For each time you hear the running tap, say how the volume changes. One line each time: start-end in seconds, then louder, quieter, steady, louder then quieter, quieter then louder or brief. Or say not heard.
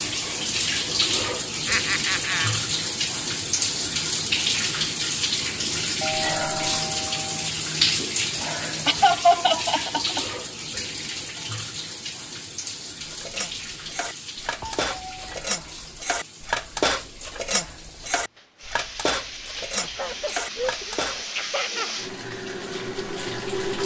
0.0-23.8 quieter then louder.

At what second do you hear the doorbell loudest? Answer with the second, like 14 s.
6 s.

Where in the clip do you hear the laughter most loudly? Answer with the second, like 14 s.
9 s.